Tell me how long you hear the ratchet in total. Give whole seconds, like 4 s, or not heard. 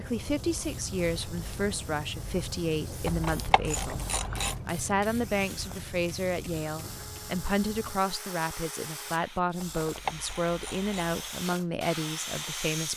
3 s.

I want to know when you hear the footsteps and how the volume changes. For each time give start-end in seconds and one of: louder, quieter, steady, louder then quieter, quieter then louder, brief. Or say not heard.
not heard.